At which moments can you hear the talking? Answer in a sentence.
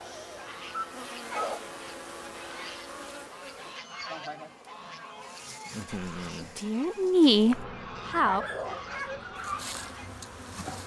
You can hear the talking from 5.8 to 8.4 s.